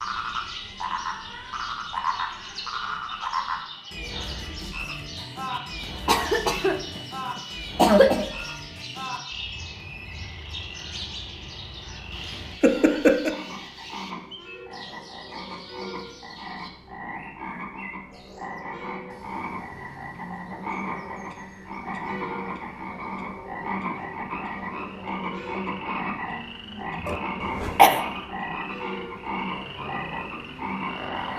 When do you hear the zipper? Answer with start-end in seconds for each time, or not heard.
not heard.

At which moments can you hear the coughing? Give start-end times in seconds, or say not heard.
6.0-6.8, 7.8-8.2, 12.6-13.3, 27.0-28.0.